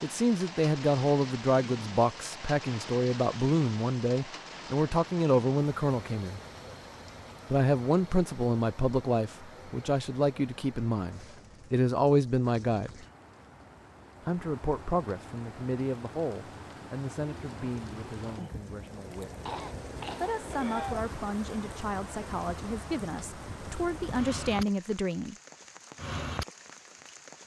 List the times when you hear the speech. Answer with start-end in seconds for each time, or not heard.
0.0-6.4, 7.5-13.1, 14.2-19.3, 20.2-25.4.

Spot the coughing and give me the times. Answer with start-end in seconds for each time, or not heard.
19.4-21.1.